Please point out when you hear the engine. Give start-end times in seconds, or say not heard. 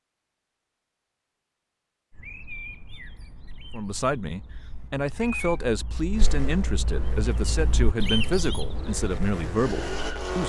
6.1-10.4.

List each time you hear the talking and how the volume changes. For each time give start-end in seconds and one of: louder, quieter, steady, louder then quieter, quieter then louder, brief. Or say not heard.
3.7-10.4 steady.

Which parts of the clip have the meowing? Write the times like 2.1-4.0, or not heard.
4.5-5.6.